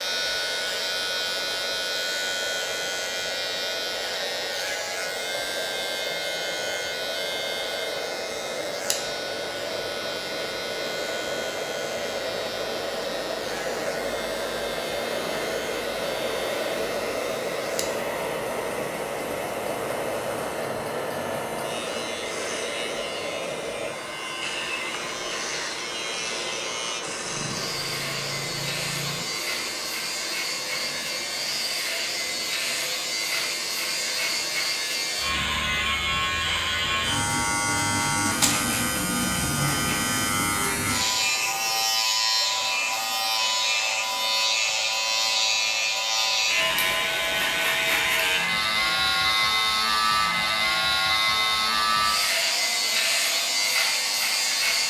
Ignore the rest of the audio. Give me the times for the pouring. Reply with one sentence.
You can hear the pouring from 27.2 to 29.2 s.